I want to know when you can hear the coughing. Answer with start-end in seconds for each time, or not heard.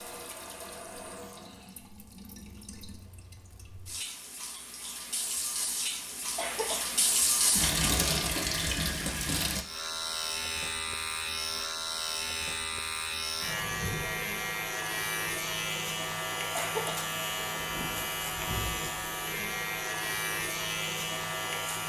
6.3-7.0, 16.6-17.1.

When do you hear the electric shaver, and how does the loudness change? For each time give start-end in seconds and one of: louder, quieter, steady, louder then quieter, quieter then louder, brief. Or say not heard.
9.6-21.8 steady.